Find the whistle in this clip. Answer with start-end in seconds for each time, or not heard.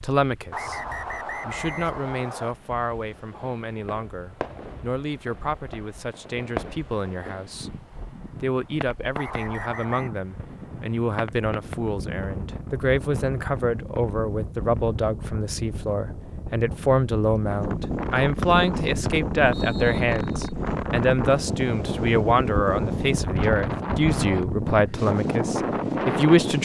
0.5-2.5, 9.2-10.2, 18.4-20.5.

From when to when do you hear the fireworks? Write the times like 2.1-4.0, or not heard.
3.1-11.8.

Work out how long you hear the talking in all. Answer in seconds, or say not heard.
25 s.